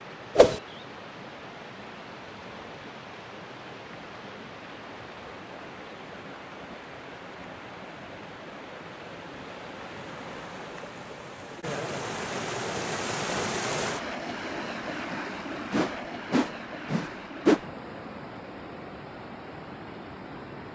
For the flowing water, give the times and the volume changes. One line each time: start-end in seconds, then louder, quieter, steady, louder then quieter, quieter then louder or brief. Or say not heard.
0.0-20.7 louder then quieter.